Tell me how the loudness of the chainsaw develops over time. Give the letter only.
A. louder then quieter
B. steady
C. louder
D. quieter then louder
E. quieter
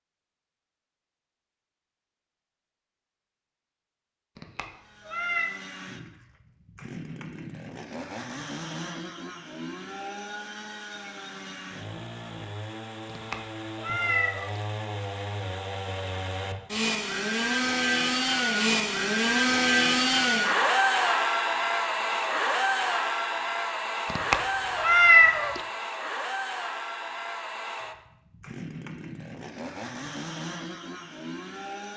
A.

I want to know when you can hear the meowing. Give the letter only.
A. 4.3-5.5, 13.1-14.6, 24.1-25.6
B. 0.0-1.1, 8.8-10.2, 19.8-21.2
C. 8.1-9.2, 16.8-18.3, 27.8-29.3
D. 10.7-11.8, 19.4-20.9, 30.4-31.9
A.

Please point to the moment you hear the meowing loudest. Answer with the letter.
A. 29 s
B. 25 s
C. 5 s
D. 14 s
B.